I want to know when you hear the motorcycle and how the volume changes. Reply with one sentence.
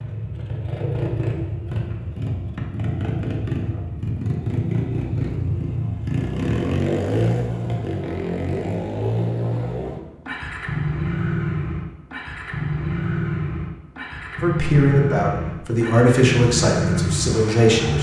You can hear the motorcycle from 0.0 to 17.9 s, at a steady volume.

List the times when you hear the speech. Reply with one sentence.
You can hear the speech from 14.4 to 17.9 s.